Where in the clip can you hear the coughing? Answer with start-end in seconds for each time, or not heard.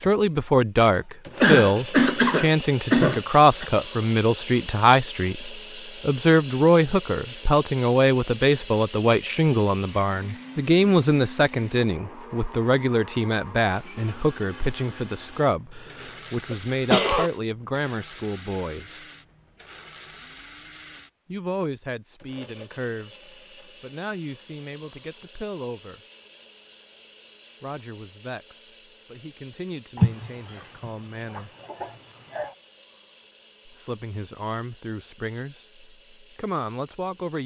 0.9-3.6, 15.8-17.3, 29.9-32.5.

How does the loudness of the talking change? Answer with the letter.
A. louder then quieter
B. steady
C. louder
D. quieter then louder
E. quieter
E.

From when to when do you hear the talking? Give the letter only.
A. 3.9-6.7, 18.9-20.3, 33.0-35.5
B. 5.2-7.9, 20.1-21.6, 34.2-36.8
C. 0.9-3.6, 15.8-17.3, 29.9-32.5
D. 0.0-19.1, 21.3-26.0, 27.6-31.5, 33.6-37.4
D.